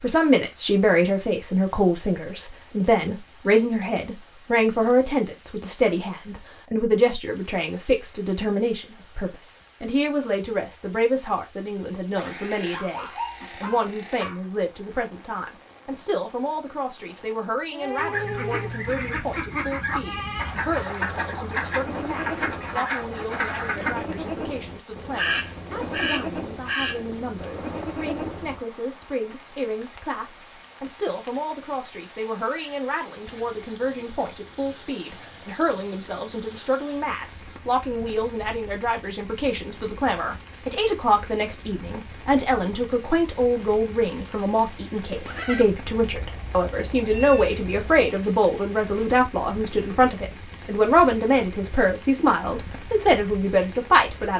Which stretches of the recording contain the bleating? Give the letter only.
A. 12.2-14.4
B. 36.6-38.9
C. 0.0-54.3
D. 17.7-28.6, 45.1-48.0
D.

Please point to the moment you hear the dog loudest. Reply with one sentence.
The loudest moment of the dog is at 13 seconds.